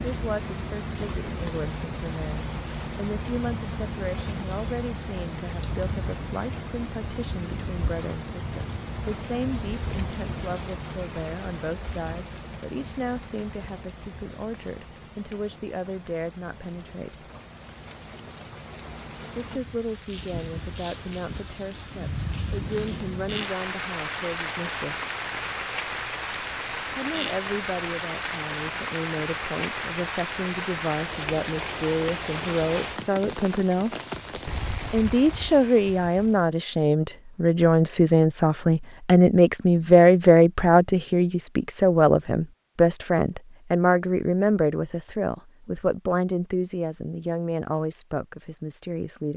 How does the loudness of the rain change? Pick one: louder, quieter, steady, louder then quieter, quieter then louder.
quieter then louder.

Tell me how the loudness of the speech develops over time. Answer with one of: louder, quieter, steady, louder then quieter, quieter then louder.
louder.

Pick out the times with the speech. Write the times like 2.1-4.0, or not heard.
0.0-17.2, 19.4-25.1, 26.9-33.9, 34.9-49.3.